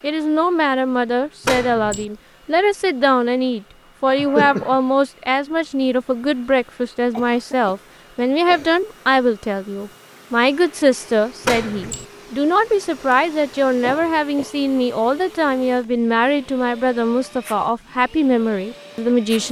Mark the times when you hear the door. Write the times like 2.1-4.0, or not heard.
1.4-2.0, 11.4-12.1.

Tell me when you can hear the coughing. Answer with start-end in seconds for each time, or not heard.
4.0-4.8, 7.1-8.8, 13.8-14.6.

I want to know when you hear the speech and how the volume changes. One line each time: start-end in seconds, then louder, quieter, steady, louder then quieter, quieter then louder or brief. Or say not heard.
0.0-19.4 steady.